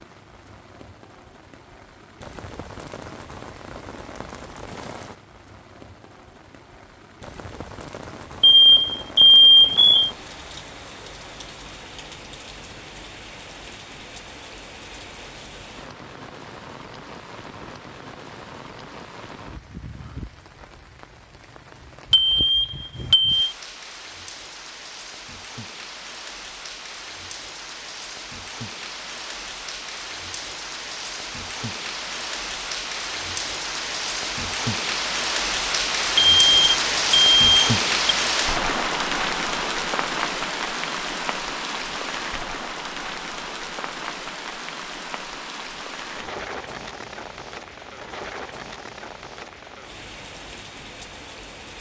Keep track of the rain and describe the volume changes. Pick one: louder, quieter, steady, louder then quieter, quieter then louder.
louder then quieter.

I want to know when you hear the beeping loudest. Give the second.
9 s.